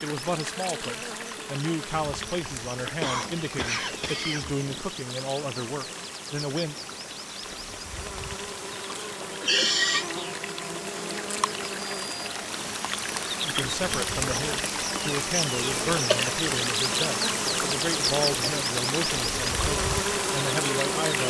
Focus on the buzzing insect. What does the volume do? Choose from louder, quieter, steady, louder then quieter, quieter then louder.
louder.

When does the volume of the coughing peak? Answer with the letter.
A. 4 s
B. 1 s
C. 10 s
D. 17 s
C.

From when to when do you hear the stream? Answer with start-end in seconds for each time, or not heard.
0.0-21.2.